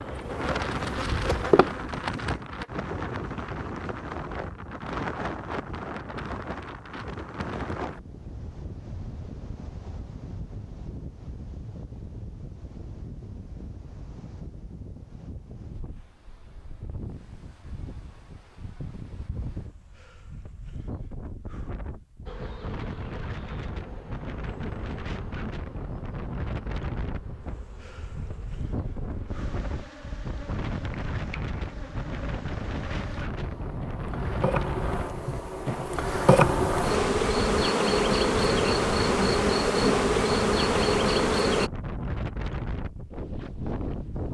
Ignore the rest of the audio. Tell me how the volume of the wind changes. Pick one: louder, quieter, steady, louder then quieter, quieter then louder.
quieter then louder.